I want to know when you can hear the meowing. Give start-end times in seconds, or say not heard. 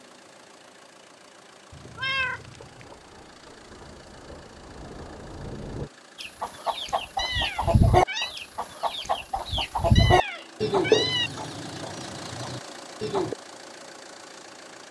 1.7-2.9, 7.2-8.3, 9.9-11.3.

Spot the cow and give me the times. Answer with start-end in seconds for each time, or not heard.
not heard.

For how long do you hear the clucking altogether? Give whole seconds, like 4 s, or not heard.
7 s.